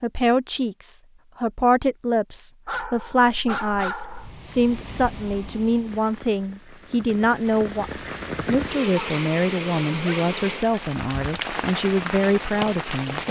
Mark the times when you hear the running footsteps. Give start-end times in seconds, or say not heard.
not heard.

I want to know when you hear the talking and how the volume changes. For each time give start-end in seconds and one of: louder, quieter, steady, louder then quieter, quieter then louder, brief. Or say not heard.
0.0-13.2 steady.